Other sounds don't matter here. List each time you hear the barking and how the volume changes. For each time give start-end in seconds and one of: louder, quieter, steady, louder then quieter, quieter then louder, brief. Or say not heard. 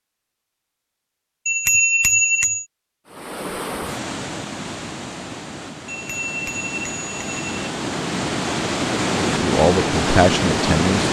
not heard.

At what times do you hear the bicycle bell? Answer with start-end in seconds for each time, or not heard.
1.4-2.6, 5.8-7.5.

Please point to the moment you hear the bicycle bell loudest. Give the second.
2 s.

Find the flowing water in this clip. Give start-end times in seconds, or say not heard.
3.0-11.0.